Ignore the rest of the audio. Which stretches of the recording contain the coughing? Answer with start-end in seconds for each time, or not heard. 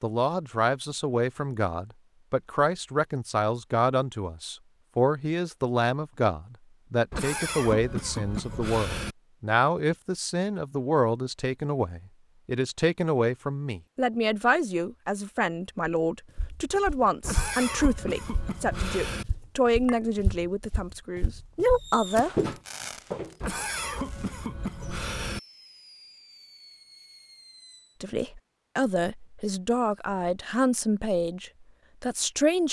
7.1-9.2, 17.2-19.2, 23.4-25.4.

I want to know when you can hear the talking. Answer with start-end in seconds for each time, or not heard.
0.0-22.5, 28.0-32.6.